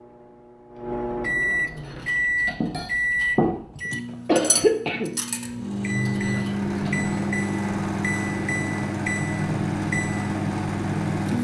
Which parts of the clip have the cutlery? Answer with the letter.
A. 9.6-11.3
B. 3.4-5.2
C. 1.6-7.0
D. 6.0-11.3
C.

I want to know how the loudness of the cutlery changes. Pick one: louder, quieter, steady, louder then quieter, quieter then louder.
louder then quieter.